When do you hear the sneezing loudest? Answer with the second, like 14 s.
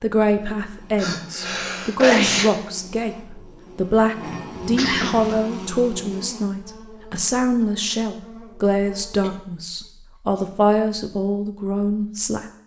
2 s.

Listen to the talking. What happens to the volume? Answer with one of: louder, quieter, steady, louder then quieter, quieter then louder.
steady.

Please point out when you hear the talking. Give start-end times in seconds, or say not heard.
0.0-12.4.